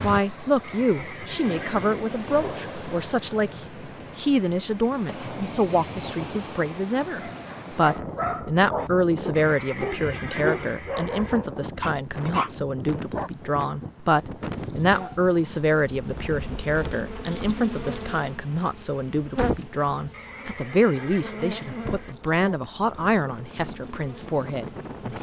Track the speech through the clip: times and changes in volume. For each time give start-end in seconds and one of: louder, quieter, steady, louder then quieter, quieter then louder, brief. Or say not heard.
0.0-25.1 steady.